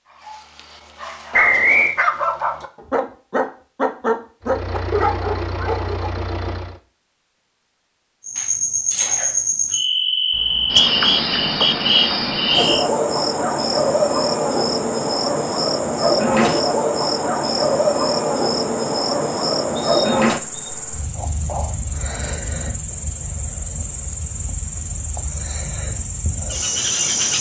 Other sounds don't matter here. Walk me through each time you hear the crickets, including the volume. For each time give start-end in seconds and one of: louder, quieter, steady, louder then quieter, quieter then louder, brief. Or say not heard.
8.2-27.3 quieter.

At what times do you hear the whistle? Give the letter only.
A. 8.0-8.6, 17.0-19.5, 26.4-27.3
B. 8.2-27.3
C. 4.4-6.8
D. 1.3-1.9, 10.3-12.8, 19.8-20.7
D.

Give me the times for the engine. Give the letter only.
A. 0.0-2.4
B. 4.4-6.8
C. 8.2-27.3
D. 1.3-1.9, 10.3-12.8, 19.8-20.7
B.